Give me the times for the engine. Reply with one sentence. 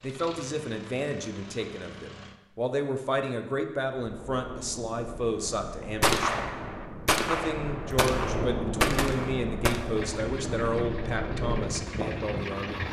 You can hear the engine from 0.0 to 2.4 s and from 9.9 to 12.8 s.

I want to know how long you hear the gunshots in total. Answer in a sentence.
The gunshots can be heard for 4 seconds in total.